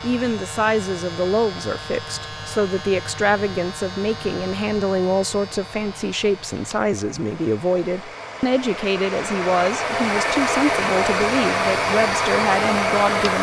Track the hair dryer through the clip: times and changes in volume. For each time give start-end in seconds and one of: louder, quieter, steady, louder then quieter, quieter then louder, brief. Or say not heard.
0.0-13.3 louder.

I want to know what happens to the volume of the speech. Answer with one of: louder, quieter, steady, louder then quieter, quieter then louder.
steady.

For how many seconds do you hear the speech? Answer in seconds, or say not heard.
13 s.